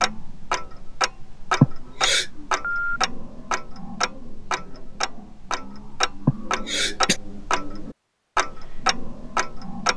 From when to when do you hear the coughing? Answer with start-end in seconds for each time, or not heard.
1.6-2.2, 6.2-7.2.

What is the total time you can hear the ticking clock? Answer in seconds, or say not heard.
10 s.